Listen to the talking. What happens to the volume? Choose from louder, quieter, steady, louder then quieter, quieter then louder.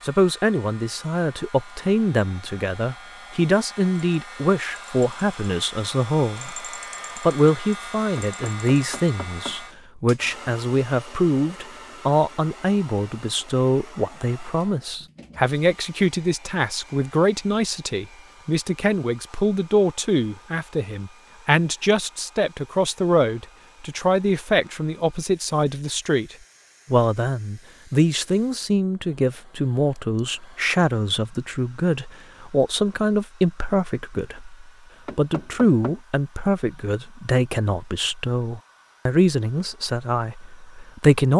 steady.